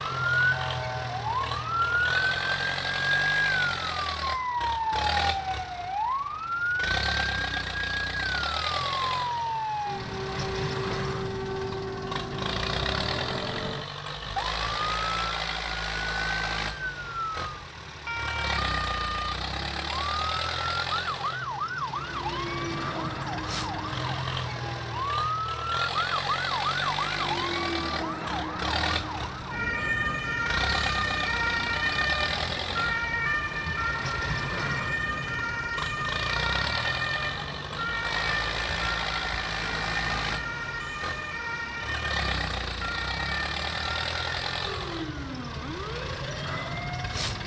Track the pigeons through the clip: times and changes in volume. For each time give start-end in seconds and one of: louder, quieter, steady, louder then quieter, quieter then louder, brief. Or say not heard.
not heard.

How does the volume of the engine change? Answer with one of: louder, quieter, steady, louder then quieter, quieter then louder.
steady.